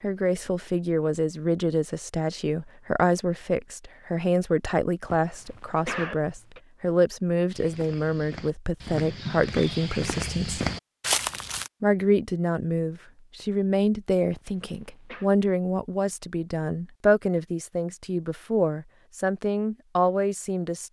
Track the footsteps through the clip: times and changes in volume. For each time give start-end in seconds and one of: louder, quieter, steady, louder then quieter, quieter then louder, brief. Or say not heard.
7.5-11.7 louder.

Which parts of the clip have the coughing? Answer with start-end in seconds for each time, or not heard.
5.1-6.6, 14.3-15.3.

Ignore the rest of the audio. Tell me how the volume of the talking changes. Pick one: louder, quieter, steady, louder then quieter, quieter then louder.
steady.